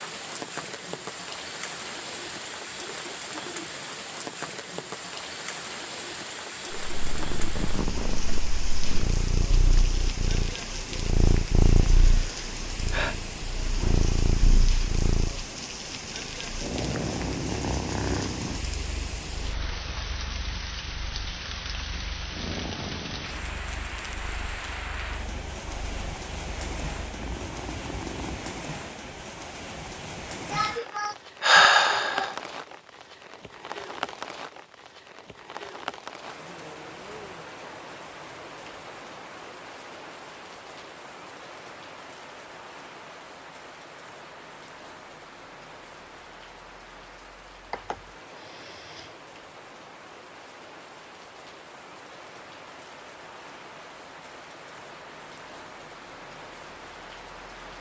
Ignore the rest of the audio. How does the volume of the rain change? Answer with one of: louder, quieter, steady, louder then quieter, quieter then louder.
quieter.